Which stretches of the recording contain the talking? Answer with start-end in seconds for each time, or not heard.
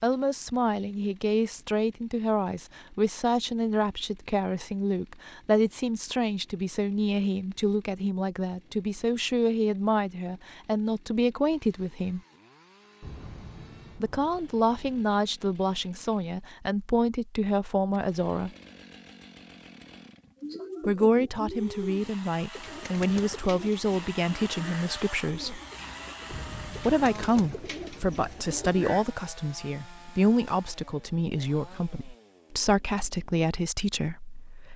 0.0-12.2, 13.9-18.5, 20.8-25.6, 26.8-34.7.